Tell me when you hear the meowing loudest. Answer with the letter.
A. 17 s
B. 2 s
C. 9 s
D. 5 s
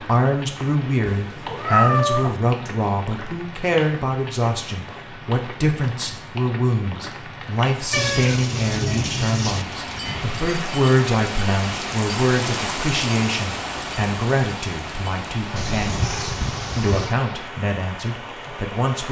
B.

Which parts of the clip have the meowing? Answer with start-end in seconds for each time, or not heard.
1.1-2.4, 7.9-9.7, 15.6-17.1.